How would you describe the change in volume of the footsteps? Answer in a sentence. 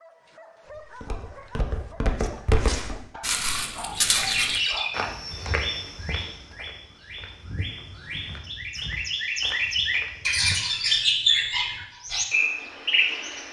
The loudness of the footsteps goes down.